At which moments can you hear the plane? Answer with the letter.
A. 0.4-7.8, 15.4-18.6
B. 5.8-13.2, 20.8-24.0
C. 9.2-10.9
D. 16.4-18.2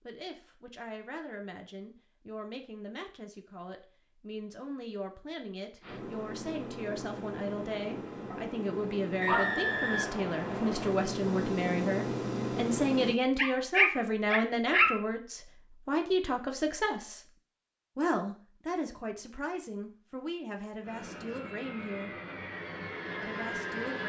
B.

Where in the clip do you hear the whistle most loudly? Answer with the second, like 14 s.
10 s.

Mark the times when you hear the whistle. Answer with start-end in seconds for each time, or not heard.
9.2-10.9.